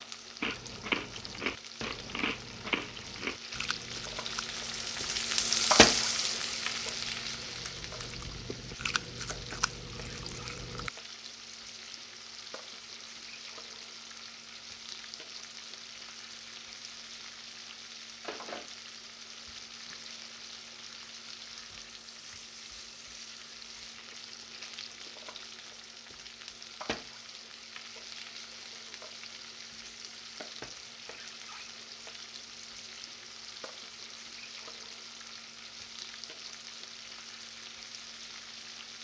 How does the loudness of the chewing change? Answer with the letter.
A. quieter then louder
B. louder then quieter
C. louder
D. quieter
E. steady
A.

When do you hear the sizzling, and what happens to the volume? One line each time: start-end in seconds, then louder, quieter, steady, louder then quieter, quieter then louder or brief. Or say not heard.
0.0-39.0 quieter.